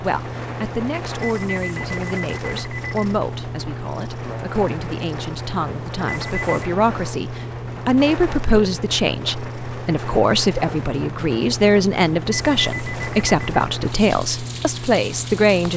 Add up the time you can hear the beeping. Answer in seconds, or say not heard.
4 s.